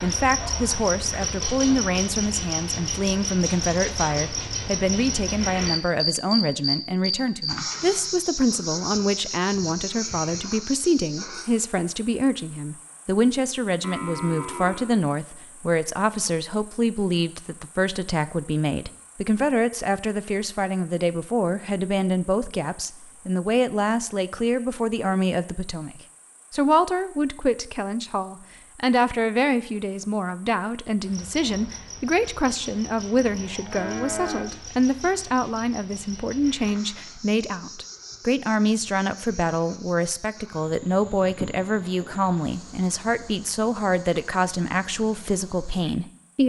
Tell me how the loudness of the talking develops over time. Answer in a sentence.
The volume of the talking stays about the same.